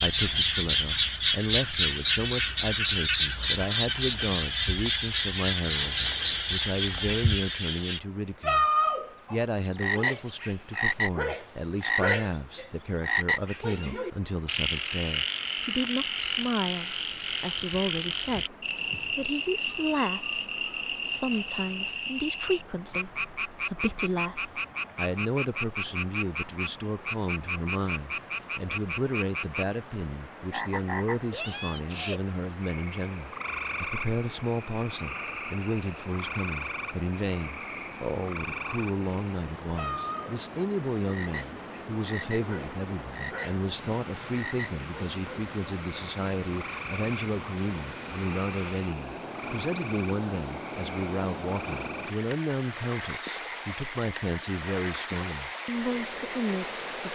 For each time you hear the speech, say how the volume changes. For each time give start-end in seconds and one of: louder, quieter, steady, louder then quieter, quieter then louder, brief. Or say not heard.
0.0-8.7 steady
9.3-57.1 steady.